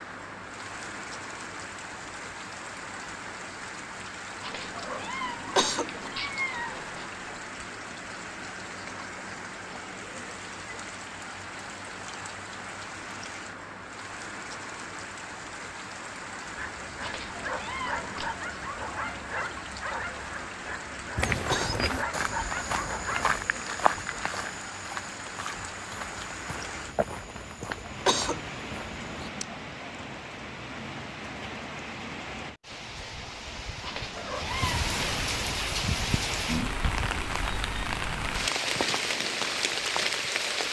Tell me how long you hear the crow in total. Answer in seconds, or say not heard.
not heard.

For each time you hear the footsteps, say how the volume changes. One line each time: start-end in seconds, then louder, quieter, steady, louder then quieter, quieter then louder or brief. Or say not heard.
21.1-29.3 quieter.